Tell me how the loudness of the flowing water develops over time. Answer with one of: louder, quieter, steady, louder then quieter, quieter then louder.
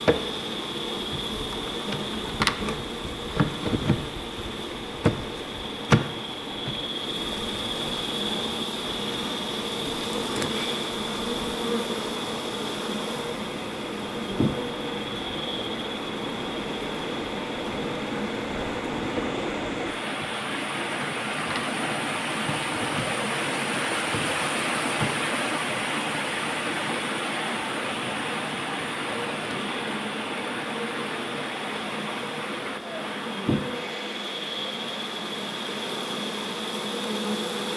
louder then quieter.